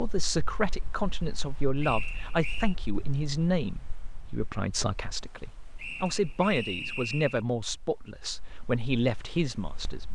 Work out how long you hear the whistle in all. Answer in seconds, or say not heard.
3 s.